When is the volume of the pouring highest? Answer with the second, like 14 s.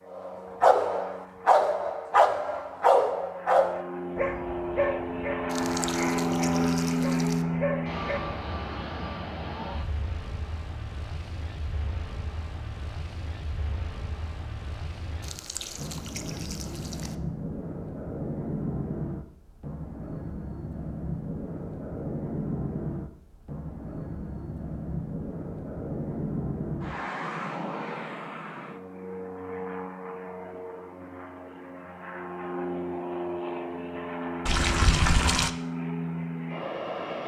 35 s.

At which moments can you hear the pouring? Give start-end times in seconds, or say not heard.
5.5-7.5, 15.2-17.1, 34.5-35.5.